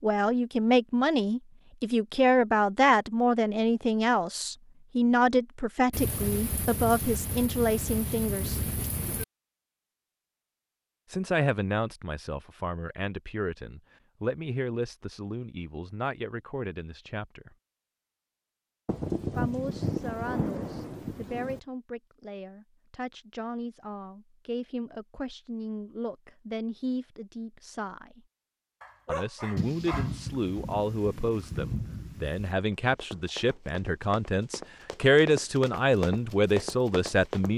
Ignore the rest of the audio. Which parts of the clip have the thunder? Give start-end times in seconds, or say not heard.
5.9-9.2, 18.9-21.6, 29.6-32.5.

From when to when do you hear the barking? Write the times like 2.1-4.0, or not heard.
28.8-30.6.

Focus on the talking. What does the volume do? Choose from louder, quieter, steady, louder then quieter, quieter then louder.
quieter then louder.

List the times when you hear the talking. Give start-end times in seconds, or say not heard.
0.0-8.6, 11.1-17.6, 19.4-28.2, 29.1-37.5.